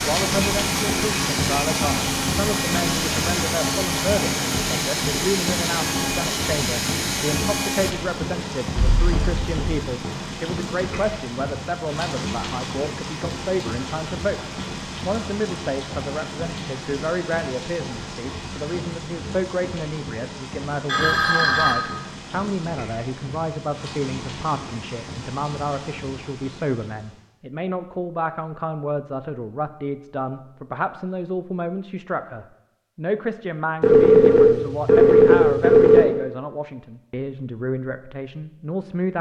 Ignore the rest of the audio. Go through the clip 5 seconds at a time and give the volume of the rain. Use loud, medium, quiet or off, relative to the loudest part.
loud, loud, medium, medium, medium, quiet, off, off.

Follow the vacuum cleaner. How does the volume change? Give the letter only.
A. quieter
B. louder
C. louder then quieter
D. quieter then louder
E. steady
E.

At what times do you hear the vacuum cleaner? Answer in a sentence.
You can hear the vacuum cleaner from 0.0 to 8.0 s.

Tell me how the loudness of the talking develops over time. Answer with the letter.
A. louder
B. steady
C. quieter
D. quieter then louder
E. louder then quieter
B.